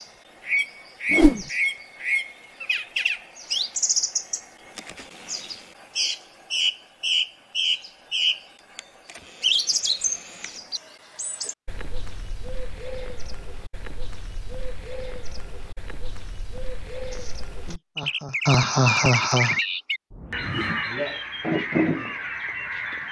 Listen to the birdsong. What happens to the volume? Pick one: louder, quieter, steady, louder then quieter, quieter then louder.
quieter then louder.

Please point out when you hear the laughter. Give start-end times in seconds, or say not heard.
17.1-19.6.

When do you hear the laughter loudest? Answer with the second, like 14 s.
19 s.